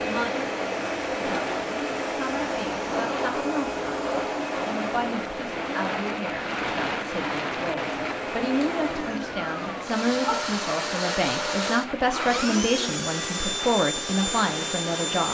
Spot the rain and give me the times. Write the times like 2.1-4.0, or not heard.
0.0-15.2.